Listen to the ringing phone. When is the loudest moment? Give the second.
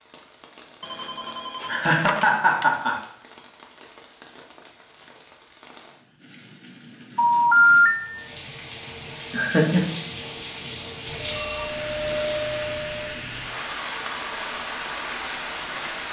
8 s.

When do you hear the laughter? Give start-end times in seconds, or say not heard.
1.6-3.0, 9.3-10.0.